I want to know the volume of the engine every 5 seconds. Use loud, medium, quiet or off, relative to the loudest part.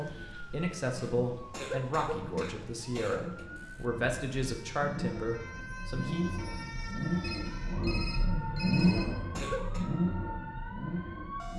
medium, loud, loud.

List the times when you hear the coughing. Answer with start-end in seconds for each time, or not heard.
0.9-3.5, 8.8-9.8.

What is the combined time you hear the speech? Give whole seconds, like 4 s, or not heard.
6 s.